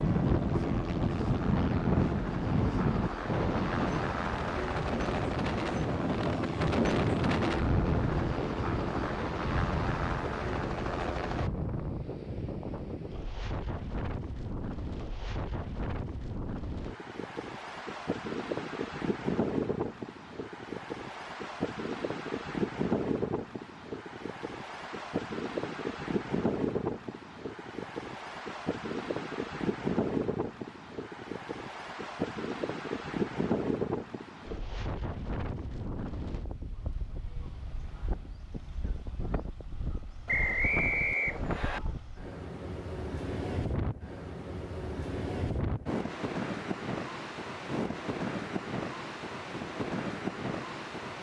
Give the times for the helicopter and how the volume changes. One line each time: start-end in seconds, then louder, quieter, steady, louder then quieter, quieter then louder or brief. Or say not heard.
0.0-11.5 steady.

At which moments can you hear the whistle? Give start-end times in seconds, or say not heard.
40.2-41.8.